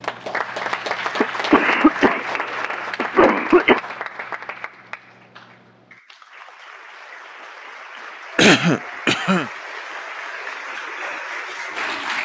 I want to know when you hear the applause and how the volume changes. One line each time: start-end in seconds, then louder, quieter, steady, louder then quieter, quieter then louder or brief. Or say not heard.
0.0-12.1 quieter then louder.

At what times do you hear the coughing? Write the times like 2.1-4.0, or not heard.
1.2-3.8, 8.3-9.5.